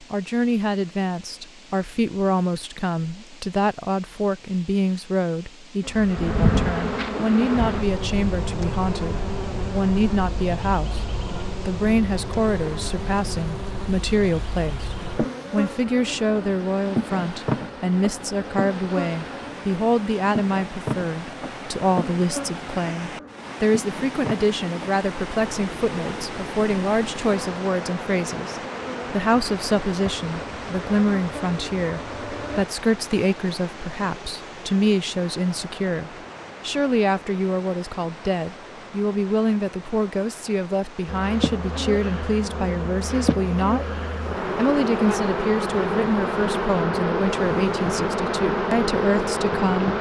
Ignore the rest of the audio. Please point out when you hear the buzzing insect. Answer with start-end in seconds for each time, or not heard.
5.8-32.6, 41.0-49.9.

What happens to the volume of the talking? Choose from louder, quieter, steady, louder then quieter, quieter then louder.
steady.